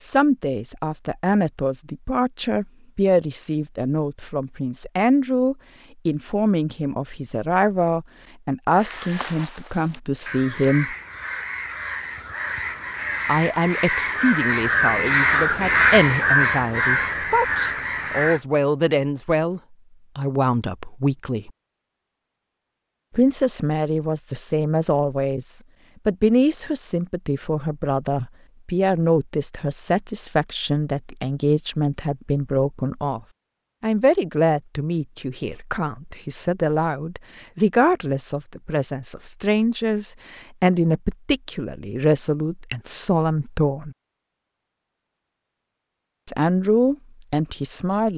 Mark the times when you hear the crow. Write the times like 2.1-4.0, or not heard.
8.7-18.4.